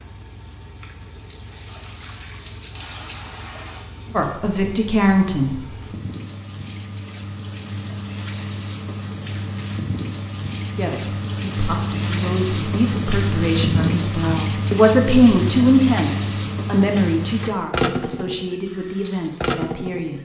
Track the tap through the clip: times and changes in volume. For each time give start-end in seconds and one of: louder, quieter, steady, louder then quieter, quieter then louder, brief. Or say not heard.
0.0-20.2 louder.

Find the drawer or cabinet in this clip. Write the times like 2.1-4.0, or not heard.
not heard.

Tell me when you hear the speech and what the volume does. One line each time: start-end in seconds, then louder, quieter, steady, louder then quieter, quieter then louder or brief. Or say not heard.
4.1-6.0 brief
10.8-20.2 louder then quieter.